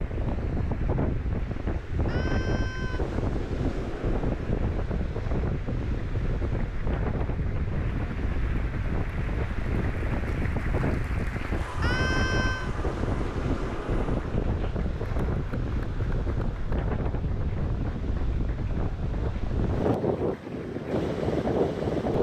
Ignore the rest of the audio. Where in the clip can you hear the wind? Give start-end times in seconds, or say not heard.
0.0-22.1.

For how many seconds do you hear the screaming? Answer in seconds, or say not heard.
2 s.